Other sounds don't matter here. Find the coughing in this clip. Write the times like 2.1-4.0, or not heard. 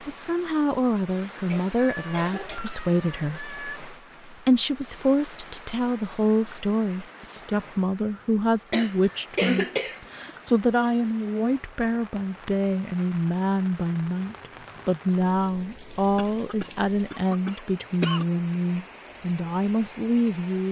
1.5-2.6, 8.7-10.3, 16.1-18.2.